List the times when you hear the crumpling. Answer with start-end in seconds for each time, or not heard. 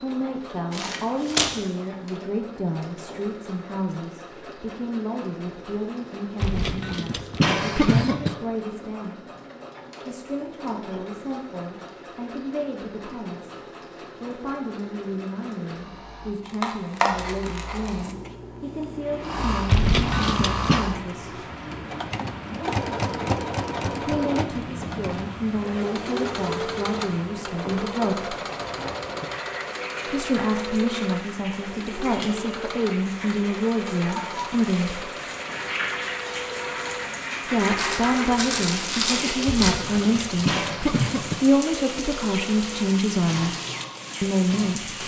0.7-1.5, 16.4-18.1, 37.8-39.8.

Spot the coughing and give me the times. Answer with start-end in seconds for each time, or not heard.
6.4-8.3, 19.6-20.9, 39.5-41.4.